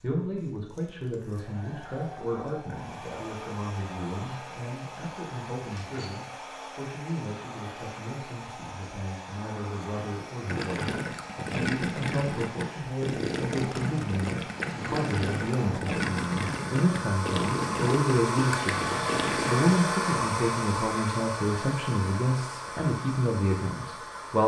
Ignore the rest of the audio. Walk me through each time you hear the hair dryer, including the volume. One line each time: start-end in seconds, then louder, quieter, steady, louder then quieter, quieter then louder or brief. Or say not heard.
0.0-24.4 louder.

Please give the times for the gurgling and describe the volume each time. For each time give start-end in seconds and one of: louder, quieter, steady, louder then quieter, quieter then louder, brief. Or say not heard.
10.4-19.6 steady.